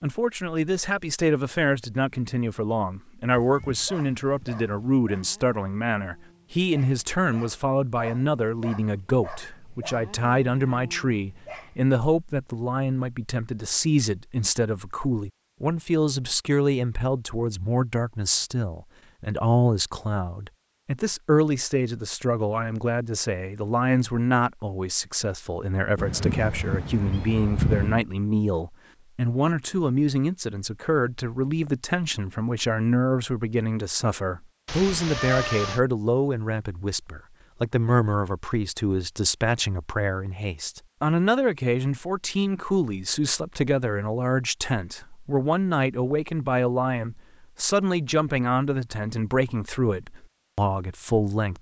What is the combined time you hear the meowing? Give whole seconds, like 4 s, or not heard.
5 s.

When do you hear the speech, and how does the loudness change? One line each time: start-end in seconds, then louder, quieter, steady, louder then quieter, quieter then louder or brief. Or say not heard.
0.0-51.5 steady.